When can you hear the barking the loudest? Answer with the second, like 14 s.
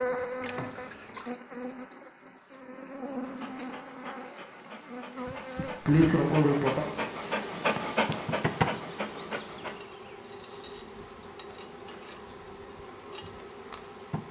8 s.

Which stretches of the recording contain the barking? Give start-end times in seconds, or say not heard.
3.2-9.8.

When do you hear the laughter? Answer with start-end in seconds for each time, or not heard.
5.6-6.8.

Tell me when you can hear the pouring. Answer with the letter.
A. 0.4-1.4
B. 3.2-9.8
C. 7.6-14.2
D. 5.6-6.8
A.